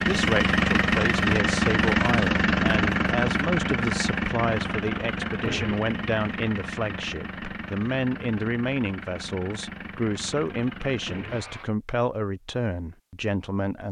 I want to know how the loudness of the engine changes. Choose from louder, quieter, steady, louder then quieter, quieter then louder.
quieter.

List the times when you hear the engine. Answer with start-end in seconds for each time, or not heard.
0.0-11.7.